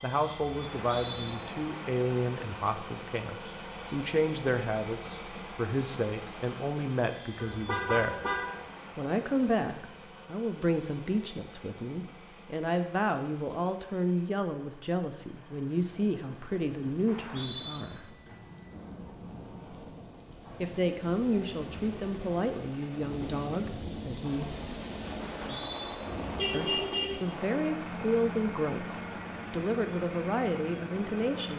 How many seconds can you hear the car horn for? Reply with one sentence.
The car horn can be heard for 2 seconds in total.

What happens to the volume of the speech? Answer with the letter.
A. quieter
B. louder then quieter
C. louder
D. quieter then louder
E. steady
E.